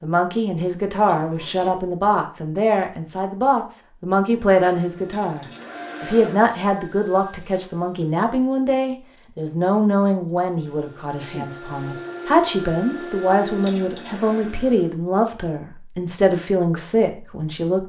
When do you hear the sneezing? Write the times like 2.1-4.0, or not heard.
1.1-1.8, 10.7-11.9.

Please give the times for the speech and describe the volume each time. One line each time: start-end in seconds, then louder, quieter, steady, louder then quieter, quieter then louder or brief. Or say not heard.
0.0-17.8 steady.